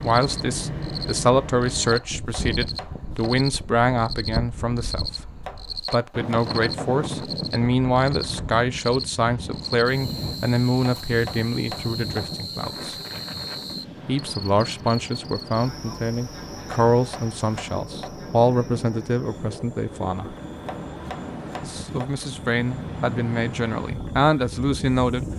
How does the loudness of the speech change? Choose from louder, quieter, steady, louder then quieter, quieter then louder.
steady.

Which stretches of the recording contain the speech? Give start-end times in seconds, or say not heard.
0.0-12.9, 14.1-20.4, 21.6-25.2.